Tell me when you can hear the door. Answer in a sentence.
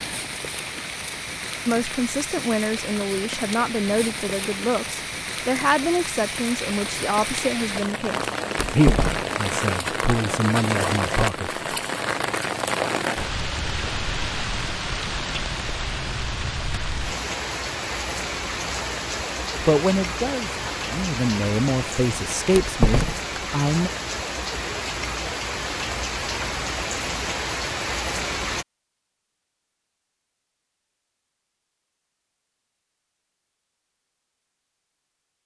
The door can be heard from 8.6 to 9.2 s and from 22.5 to 23.4 s.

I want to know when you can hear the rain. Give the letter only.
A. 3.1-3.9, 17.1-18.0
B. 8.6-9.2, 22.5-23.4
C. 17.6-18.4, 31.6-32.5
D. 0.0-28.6
D.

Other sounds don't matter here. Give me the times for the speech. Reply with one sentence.
The speech can be heard from 1.6 to 11.5 s and from 19.6 to 23.9 s.